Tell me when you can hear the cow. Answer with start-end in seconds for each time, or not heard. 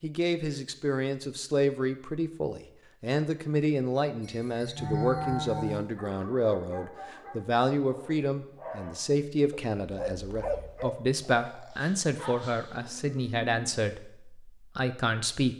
4.2-5.8, 12.7-13.8.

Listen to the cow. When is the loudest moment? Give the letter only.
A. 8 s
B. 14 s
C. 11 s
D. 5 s
D.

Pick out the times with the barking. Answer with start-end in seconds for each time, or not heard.
5.8-12.8.